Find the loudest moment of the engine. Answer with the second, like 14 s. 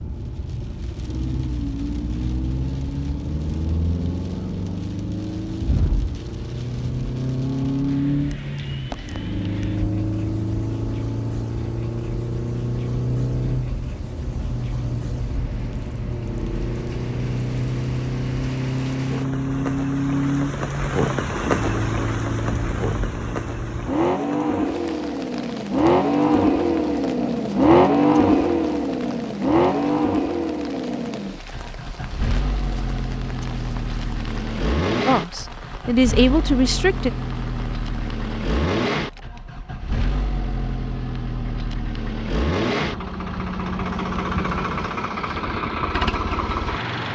28 s.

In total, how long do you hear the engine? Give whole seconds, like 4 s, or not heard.
47 s.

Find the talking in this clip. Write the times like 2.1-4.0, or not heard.
35.0-37.1.